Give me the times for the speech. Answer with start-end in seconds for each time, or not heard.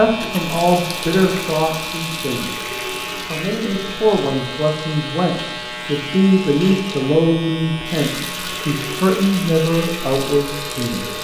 0.0-11.1.